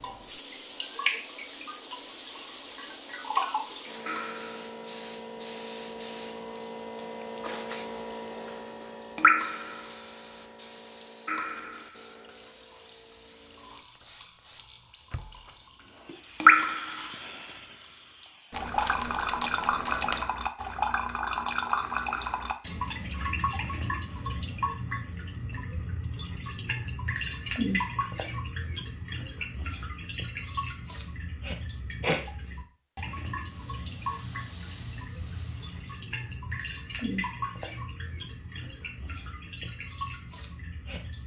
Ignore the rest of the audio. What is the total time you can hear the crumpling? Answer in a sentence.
The crumpling can be heard for 2 seconds in total.